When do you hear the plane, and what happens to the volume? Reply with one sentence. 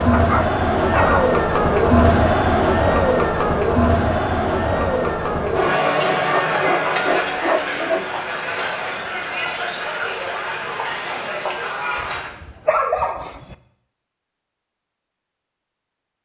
You can't hear the plane here.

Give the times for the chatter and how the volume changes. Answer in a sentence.
You can hear the chatter from 0.0 to 12.3 s, getting quieter.